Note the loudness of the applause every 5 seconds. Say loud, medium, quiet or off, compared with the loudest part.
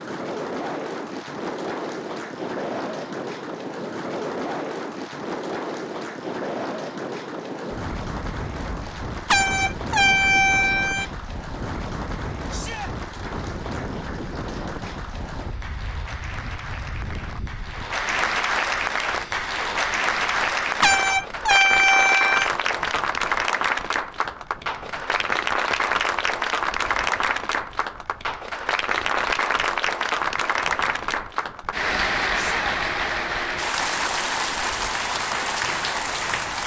quiet, quiet, quiet, loud, loud, loud, loud, loud.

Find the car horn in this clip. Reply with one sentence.
The car horn can be heard from 9.2 to 11.1 s and from 20.8 to 22.5 s.